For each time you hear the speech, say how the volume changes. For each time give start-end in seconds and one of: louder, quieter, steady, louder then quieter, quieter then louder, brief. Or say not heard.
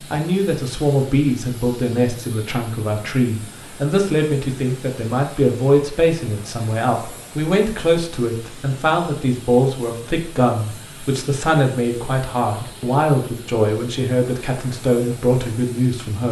0.1-16.2 steady.